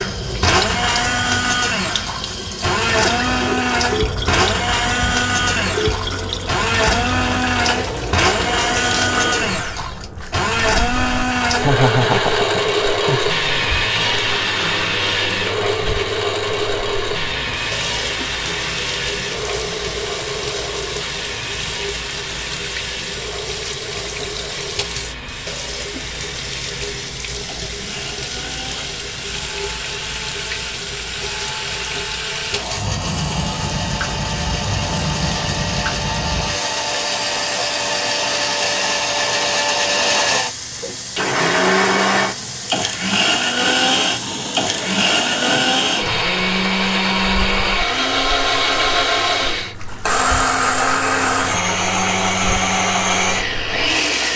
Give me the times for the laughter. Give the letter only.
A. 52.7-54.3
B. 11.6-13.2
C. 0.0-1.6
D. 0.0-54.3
B.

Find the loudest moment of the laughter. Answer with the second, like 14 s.
12 s.